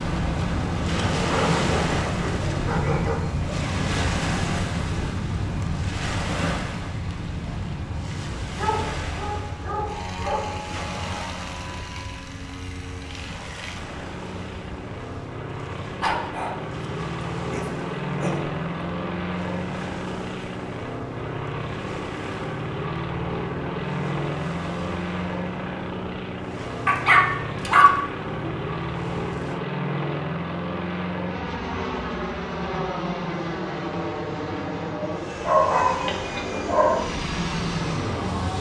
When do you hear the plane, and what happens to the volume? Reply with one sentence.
The plane can be heard from 0.0 to 38.5 s, getting quieter then louder.